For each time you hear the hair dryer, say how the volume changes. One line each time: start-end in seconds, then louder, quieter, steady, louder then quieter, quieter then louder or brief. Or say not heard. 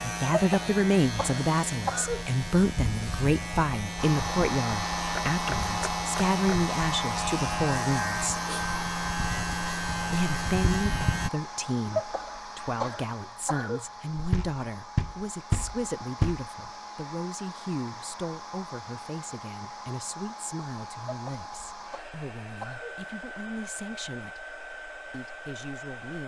4.0-26.2 quieter.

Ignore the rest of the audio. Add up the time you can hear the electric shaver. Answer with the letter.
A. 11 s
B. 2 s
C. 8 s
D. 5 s
A.